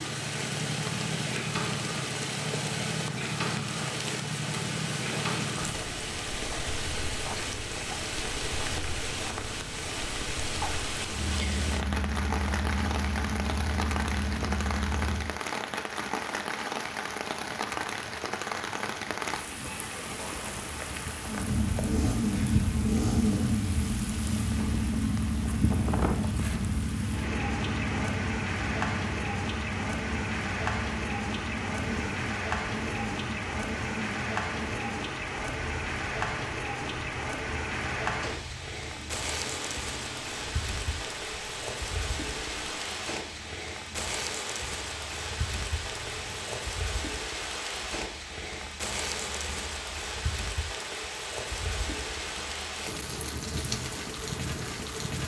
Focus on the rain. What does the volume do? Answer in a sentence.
The loudness of the rain stays about the same.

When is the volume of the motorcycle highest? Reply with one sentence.
The loudest moment of the motorcycle is at 23 seconds.